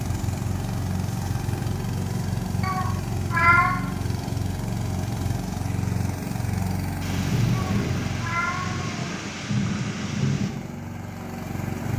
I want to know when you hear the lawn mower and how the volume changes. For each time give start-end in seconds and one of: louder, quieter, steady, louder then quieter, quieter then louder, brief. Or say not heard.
0.0-11.9 quieter.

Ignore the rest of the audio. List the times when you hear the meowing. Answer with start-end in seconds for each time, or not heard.
2.6-3.8, 7.5-9.1.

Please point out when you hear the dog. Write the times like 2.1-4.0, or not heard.
not heard.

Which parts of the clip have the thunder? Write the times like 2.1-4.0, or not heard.
7.0-10.5.